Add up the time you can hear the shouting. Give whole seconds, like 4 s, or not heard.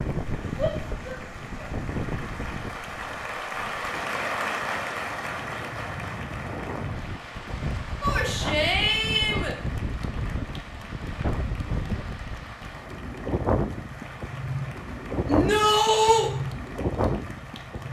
4 s.